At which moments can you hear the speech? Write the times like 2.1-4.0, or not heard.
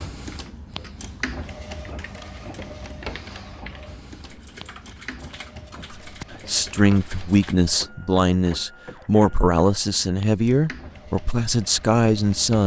5.9-12.6.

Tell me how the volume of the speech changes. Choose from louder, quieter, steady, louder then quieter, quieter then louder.
steady.